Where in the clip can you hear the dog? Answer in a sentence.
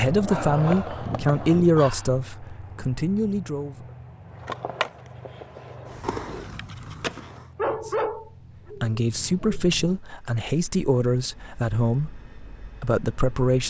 The dog can be heard from 0.2 to 2.1 s and from 7.5 to 9.6 s.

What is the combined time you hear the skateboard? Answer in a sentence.
You can hear the skateboard for 5 seconds altogether.